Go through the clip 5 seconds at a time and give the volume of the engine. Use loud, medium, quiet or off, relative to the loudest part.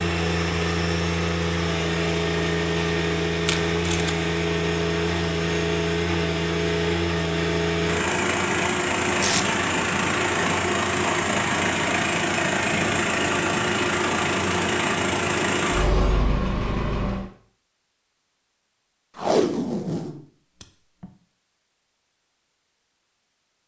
loud, loud, loud, loud, off.